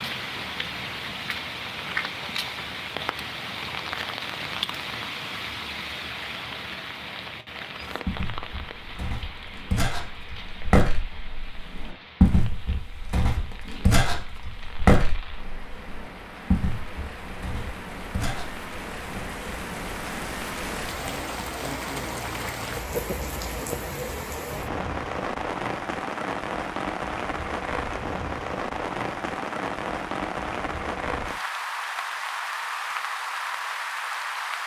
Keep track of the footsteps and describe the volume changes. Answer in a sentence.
The volume of the footsteps goes up, then down.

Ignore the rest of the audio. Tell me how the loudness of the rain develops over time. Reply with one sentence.
The loudness of the rain goes down, then up.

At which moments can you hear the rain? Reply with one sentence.
The rain can be heard from 0.0 to 34.6 s.